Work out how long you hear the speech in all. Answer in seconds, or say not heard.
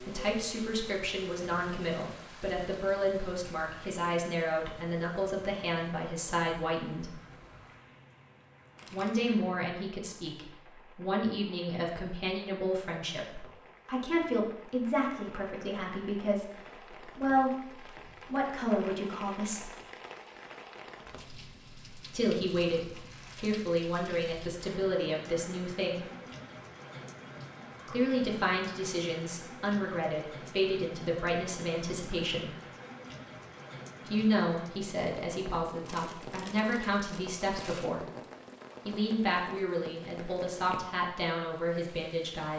34 s.